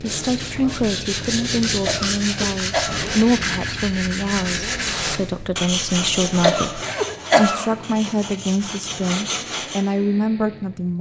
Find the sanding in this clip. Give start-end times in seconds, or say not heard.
0.0-9.8.